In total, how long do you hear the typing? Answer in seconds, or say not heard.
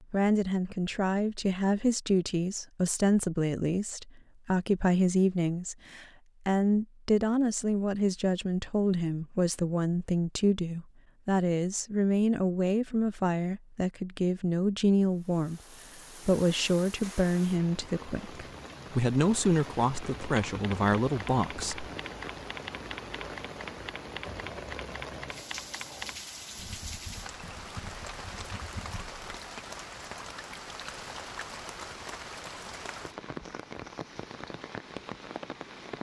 9 s.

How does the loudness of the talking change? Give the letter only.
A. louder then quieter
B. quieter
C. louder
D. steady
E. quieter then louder
D.